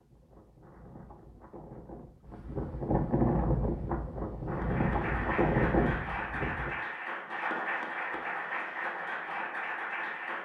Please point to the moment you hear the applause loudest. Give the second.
8 s.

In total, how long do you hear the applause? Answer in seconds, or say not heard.
6 s.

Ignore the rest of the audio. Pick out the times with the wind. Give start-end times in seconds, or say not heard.
0.0-6.8.